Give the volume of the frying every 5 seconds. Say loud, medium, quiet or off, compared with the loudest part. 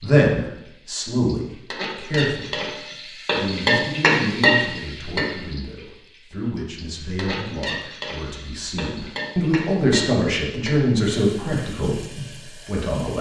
loud, medium, medium.